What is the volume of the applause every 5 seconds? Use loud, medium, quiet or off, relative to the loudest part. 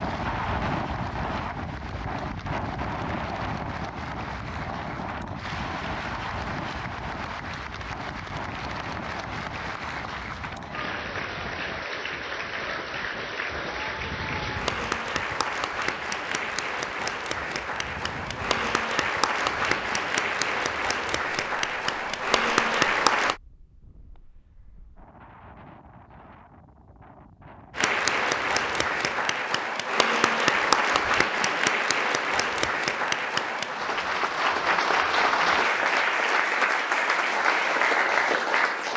quiet, quiet, medium, medium, loud, loud, loud, loud.